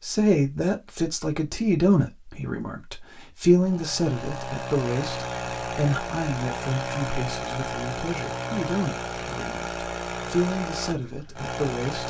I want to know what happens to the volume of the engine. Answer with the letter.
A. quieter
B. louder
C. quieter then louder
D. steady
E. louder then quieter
D.